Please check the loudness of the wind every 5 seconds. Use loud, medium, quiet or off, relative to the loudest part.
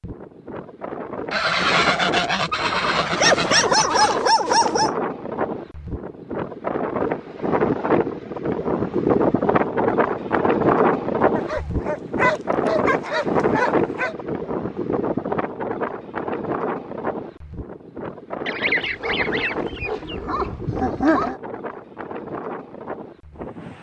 medium, loud, loud, medium, medium.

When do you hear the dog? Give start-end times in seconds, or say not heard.
3.1-5.0, 11.3-14.2, 18.8-21.4.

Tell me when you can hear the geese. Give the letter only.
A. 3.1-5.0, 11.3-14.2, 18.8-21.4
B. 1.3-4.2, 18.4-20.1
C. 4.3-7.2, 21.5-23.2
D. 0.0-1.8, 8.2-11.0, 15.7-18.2
B.